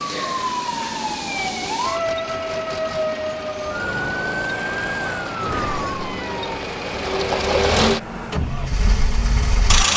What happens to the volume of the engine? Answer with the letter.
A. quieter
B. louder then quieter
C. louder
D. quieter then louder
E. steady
C.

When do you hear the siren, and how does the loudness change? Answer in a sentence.
You can hear the siren from 0.0 to 6.7 s, at a steady volume.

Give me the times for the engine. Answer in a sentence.
You can hear the engine from 0.0 to 9.9 s.